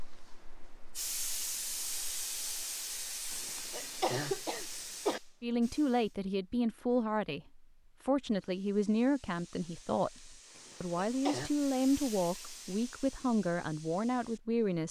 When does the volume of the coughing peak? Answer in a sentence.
The loudest moment of the coughing is at 4 seconds.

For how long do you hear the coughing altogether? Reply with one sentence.
You can hear the coughing for 3 seconds altogether.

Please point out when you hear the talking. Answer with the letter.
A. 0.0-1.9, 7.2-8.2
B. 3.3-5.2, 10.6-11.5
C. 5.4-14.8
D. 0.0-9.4
C.